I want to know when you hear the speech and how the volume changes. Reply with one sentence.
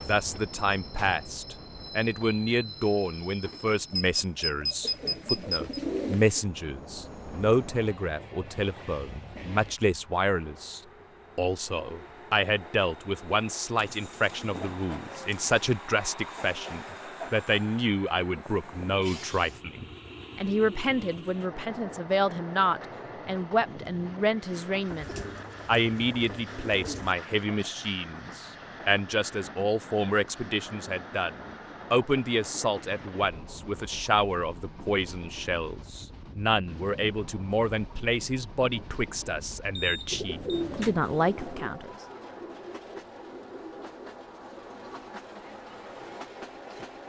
You can hear the speech from 0.1 to 42.0 s, at a steady volume.